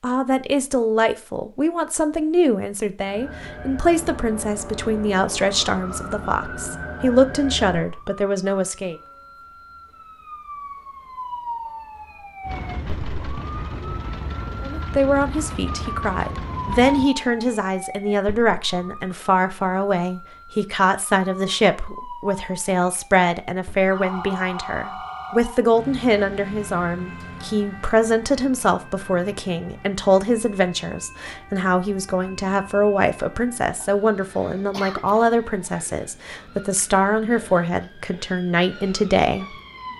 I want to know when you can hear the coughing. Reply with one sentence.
You can hear the coughing from 34.2 to 35.0 s.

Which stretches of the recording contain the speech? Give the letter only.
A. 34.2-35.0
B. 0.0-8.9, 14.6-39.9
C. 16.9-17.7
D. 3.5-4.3
B.